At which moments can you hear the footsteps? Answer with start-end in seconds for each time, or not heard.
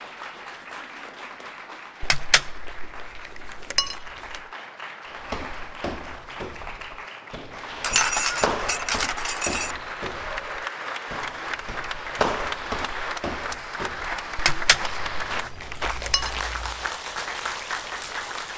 5.0-16.9.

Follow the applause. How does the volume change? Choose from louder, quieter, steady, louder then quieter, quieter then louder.
louder.